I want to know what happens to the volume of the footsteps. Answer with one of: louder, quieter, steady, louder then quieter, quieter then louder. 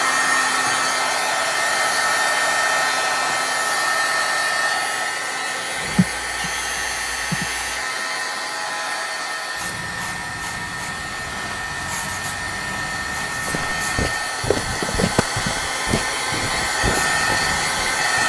quieter.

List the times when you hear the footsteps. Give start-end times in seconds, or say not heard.
13.4-18.2.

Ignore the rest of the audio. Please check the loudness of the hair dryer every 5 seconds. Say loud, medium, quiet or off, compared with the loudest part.
loud, medium, medium, loud.